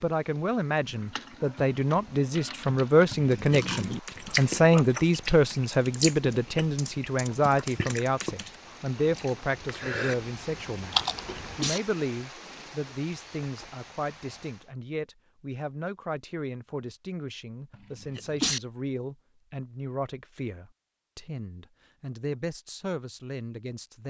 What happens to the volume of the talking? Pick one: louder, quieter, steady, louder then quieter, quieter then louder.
quieter.